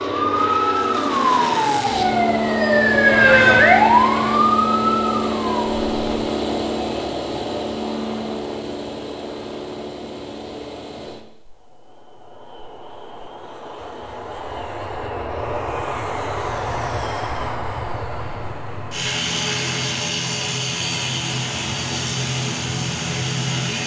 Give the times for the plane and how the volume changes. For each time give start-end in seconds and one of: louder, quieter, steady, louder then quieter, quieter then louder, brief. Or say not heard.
0.0-23.8 quieter then louder.